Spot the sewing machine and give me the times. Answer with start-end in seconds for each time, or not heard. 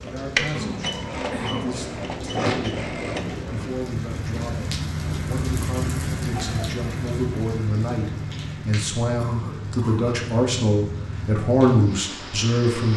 0.0-3.8.